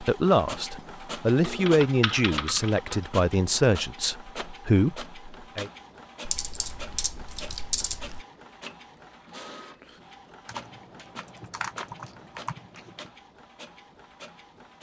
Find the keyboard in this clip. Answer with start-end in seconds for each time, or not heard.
1.4-3.0, 6.2-8.2, 10.4-13.1.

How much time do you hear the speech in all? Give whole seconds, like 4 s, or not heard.
6 s.